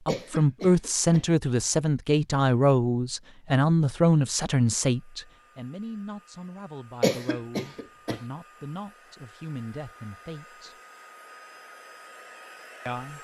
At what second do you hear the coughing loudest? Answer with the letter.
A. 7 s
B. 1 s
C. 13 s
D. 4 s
A.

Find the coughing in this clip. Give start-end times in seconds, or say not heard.
0.1-1.2, 7.0-8.2.